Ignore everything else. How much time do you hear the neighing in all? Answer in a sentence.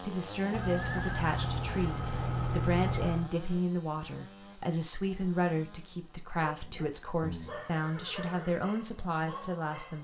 You can hear the neighing for 5 seconds altogether.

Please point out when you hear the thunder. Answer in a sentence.
The thunder can't be heard in this clip.